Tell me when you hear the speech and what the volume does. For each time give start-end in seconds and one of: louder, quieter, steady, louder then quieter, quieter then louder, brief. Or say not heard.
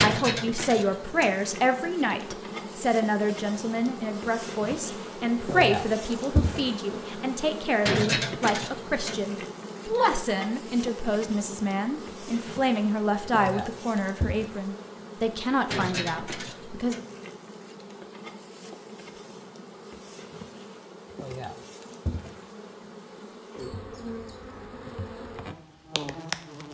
0.0-16.9 steady.